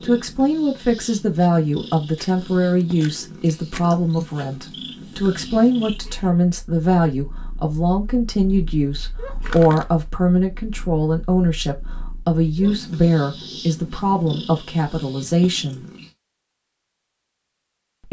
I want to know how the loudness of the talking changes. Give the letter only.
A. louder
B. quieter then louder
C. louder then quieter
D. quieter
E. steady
E.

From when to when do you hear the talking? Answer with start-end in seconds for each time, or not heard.
0.0-15.8.